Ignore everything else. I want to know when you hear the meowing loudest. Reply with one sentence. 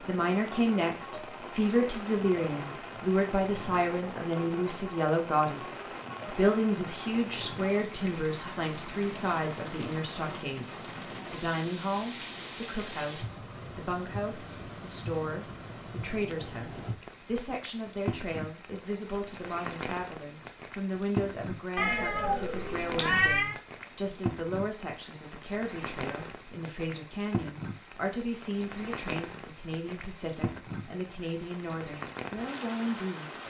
The loudest moment of the meowing is at 23 seconds.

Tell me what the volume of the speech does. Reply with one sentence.
The loudness of the speech goes down.